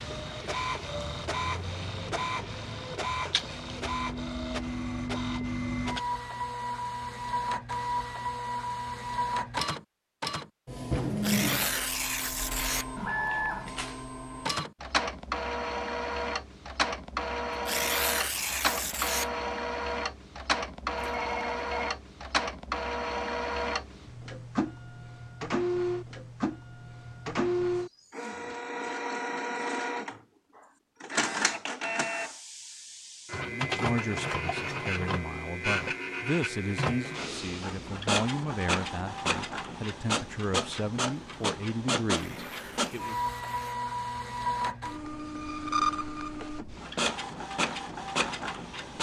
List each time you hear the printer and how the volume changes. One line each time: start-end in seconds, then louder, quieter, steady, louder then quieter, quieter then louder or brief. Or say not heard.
0.0-48.9 steady.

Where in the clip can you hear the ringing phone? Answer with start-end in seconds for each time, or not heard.
20.9-21.9.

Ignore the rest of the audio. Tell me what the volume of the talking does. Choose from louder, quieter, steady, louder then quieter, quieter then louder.
steady.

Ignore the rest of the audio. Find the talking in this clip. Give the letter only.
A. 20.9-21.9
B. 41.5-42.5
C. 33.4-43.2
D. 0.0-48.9
C.